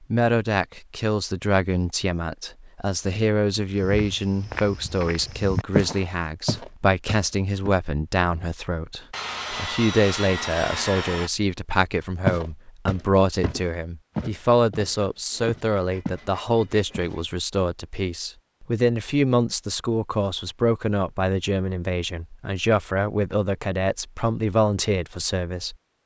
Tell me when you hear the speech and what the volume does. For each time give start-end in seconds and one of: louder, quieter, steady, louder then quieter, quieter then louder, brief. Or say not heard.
0.1-25.8 steady.